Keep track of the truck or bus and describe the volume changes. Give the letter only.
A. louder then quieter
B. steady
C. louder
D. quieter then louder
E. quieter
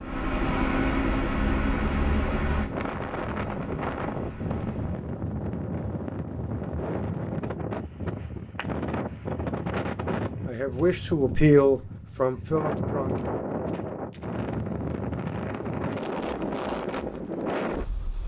E.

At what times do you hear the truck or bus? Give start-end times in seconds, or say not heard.
0.0-5.1.